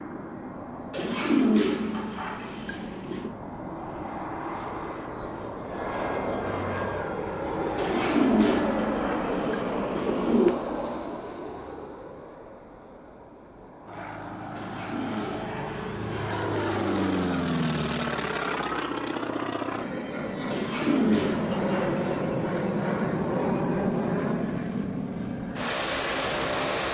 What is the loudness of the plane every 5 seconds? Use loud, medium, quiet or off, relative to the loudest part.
medium, loud, medium, loud, loud, loud.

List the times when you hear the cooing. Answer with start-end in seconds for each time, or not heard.
0.9-3.3, 7.8-10.5, 14.6-17.0, 20.5-22.2.